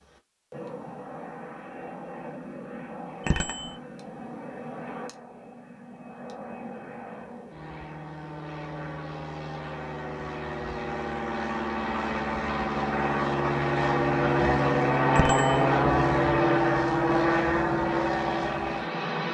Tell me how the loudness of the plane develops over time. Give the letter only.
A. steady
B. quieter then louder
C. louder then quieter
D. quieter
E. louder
E.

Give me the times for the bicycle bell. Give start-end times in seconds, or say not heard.
3.2-3.8, 15.2-15.7.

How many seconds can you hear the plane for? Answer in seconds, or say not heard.
19 s.